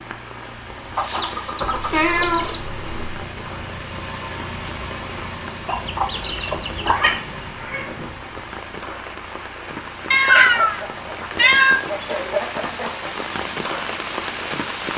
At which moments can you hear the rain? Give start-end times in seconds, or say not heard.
0.0-14.9.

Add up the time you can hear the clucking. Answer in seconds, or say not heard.
6 s.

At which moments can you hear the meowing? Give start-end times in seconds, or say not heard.
1.6-3.2, 6.1-8.2, 10.1-11.8.